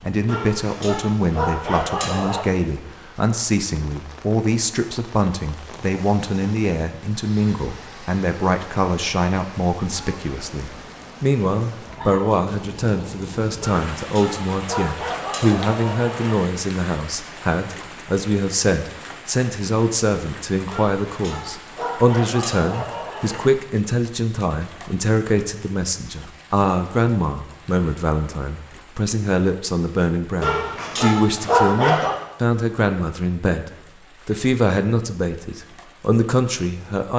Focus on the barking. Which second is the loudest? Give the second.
32 s.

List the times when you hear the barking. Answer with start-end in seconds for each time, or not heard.
0.2-2.5, 13.6-16.4, 20.7-23.4, 30.4-32.1.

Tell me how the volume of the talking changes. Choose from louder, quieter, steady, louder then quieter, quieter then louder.
steady.